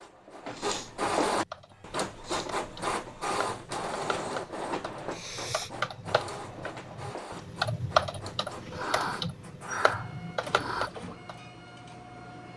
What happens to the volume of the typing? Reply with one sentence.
The volume of the typing goes up, then down.